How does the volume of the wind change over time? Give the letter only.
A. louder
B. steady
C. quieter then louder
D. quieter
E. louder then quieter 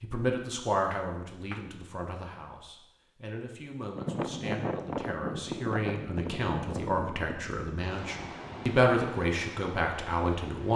D.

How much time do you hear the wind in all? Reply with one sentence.
You can hear the wind for 7 seconds altogether.